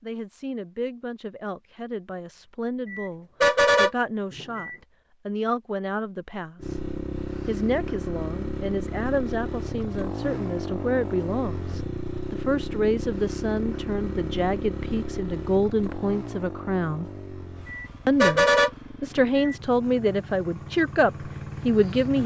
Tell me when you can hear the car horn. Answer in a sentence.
The car horn can be heard from 2.9 to 4.8 s and from 17.6 to 19.6 s.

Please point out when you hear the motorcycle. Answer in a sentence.
You can hear the motorcycle from 6.5 to 22.2 s.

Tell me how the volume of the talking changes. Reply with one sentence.
The loudness of the talking goes up.